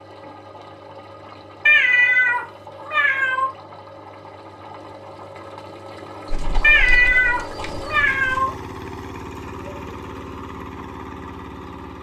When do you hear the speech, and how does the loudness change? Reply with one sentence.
You can't hear the speech here.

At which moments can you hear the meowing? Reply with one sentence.
You can hear the meowing from 1.6 to 3.5 s and from 6.6 to 8.5 s.